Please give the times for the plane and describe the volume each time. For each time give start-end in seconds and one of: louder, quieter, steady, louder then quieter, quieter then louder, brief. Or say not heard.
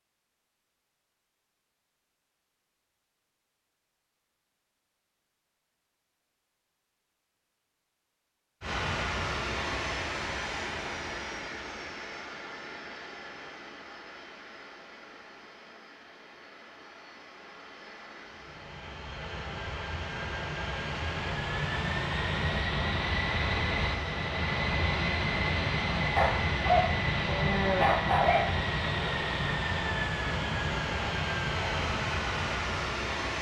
8.6-33.3 quieter then louder.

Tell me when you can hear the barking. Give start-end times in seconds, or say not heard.
26.1-28.5.